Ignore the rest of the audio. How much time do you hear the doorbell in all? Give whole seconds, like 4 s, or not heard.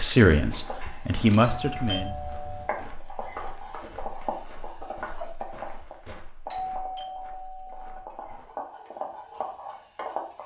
3 s.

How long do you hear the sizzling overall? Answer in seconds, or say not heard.
10 s.